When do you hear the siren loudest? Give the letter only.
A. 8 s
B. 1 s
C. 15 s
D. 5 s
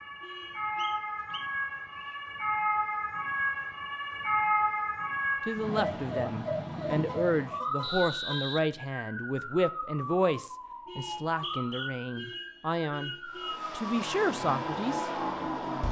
D.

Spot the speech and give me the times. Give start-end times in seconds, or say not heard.
5.5-15.1.